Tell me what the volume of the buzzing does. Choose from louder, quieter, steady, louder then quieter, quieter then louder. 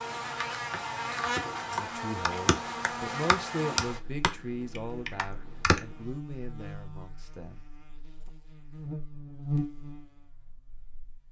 quieter then louder.